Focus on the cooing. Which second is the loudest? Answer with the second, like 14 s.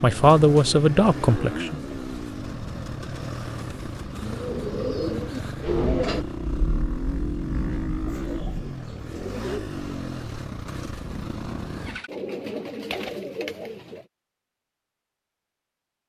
6 s.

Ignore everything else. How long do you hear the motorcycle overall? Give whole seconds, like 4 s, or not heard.
12 s.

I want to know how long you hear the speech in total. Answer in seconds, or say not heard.
2 s.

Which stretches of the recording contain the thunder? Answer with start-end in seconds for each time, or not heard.
5.7-8.6.